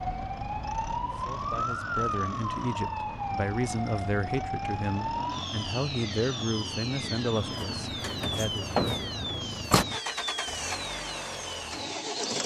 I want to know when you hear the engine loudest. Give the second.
12 s.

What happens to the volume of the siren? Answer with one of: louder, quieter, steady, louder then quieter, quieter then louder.
quieter.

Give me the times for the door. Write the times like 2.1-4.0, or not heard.
7.5-9.8.